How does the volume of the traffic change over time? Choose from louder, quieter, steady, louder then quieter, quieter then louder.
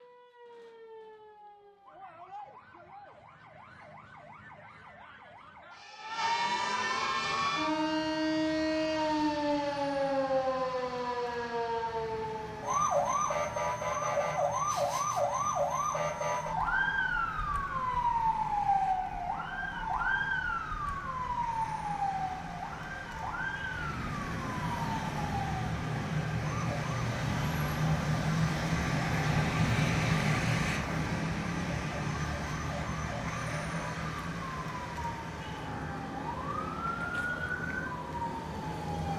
louder then quieter.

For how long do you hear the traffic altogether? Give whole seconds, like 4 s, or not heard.
32 s.